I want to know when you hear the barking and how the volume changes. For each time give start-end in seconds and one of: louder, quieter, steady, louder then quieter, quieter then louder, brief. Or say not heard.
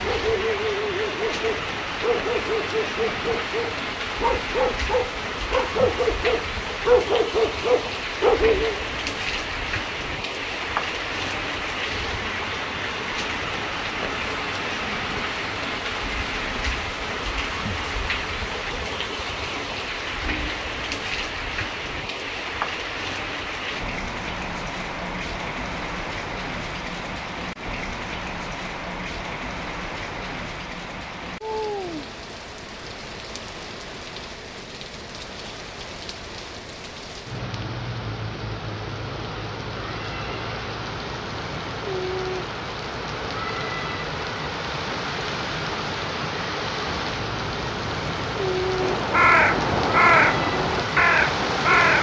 0.0-8.8 louder.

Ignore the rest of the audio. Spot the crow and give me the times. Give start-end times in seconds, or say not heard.
48.8-51.9.